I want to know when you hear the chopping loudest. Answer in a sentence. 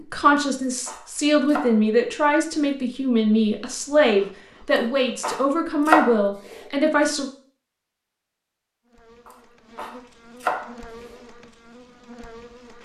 The loudest moment of the chopping is at 6 seconds.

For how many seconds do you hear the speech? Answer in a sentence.
The speech can be heard for 7 seconds in total.